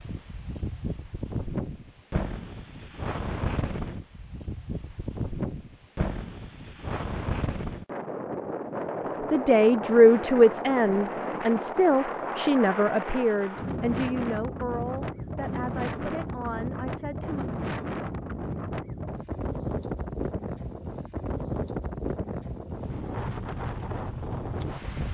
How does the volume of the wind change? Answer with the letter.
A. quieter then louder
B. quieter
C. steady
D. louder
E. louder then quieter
C.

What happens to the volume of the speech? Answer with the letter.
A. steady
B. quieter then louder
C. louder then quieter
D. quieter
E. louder
D.